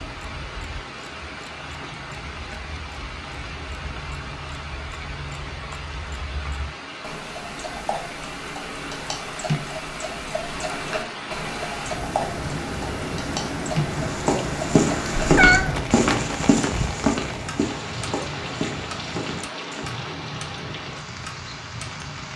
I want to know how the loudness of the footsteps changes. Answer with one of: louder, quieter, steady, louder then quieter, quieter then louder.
quieter.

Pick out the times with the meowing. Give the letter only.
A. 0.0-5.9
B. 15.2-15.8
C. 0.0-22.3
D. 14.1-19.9
B.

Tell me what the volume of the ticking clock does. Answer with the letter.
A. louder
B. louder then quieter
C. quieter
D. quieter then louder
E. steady
B.